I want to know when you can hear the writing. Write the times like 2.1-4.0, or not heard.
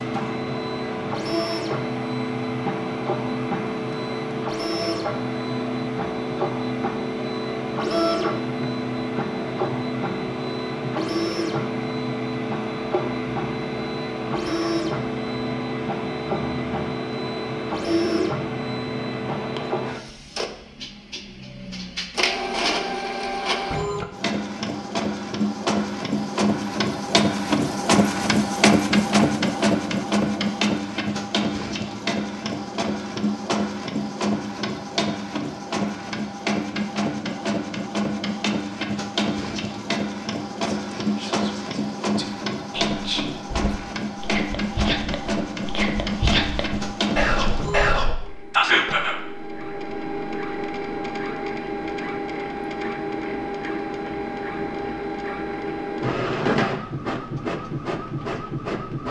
not heard.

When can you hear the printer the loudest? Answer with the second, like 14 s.
29 s.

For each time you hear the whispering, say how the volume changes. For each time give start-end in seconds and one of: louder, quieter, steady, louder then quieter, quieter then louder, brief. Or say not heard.
40.5-49.1 louder.